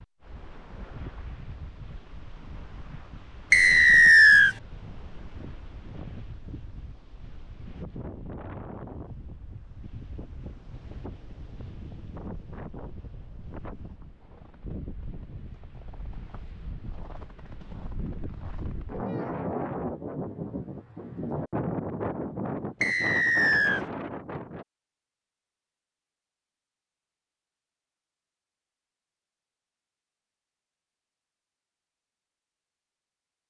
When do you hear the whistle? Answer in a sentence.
The whistle can be heard from 3.5 to 4.5 s and from 22.8 to 23.9 s.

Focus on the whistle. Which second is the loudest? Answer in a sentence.
The loudest moment of the whistle is at 4 seconds.